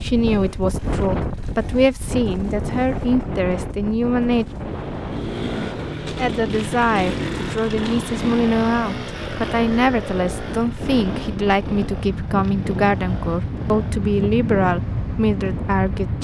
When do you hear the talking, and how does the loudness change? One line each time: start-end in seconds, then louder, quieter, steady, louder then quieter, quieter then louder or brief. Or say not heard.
0.0-4.5 steady
6.2-16.1 steady.